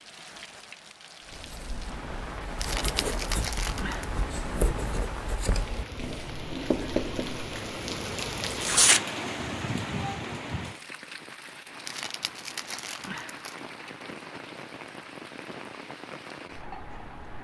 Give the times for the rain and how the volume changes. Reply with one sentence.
You can hear the rain from 0.0 to 17.3 s, getting louder then quieter.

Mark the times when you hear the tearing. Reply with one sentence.
The tearing can be heard from 2.6 to 4.0 s, from 8.4 to 9.0 s and from 11.8 to 13.6 s.